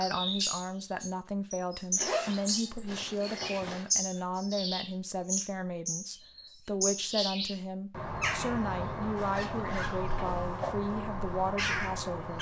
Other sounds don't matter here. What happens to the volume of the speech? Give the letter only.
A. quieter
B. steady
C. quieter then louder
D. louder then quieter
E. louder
B.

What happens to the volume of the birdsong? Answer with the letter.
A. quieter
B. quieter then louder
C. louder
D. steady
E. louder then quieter
D.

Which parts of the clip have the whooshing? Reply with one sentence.
You can hear the whooshing from 10.2 to 10.8 s.